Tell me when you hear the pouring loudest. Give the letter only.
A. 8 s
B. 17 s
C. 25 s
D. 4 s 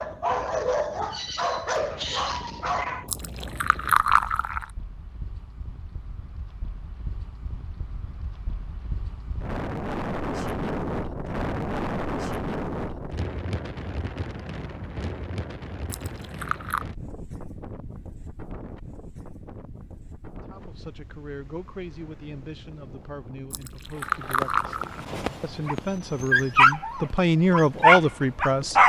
D.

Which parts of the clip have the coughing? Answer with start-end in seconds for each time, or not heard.
not heard.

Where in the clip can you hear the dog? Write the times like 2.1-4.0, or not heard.
0.0-3.0, 24.3-28.8.